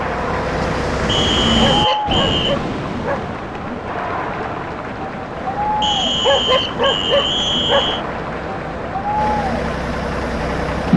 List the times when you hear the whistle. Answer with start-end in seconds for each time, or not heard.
1.1-2.5, 5.8-8.1.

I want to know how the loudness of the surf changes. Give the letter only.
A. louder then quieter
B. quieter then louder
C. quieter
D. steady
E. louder
C.